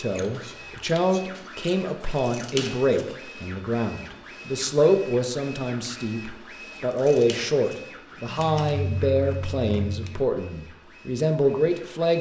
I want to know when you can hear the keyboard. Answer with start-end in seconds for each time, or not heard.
not heard.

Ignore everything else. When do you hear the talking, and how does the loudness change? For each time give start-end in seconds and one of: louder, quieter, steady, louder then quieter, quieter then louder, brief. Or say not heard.
0.0-12.1 steady.